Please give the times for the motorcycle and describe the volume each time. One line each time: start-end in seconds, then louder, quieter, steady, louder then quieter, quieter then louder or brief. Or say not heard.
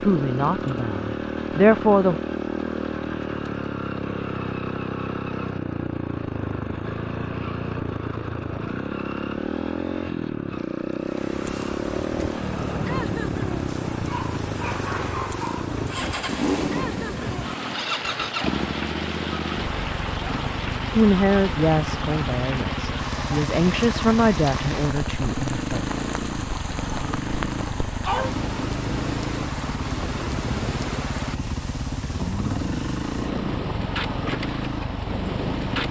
0.0-35.8 steady.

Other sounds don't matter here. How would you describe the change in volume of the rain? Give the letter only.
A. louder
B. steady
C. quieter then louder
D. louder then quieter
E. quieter
B.